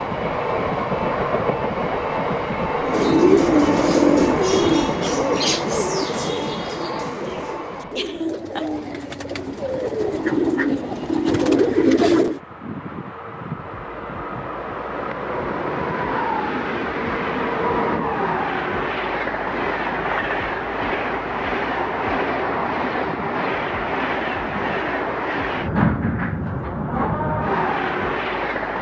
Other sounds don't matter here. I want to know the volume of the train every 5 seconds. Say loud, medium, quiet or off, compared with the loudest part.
loud, medium, medium, loud, loud, loud.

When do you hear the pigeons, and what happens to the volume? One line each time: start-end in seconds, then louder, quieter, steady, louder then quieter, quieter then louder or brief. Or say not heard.
2.8-12.4 quieter then louder.